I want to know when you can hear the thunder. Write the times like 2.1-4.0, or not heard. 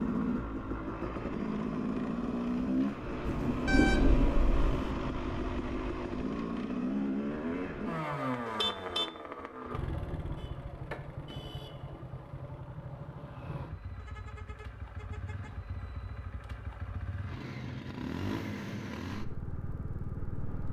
3.2-5.0.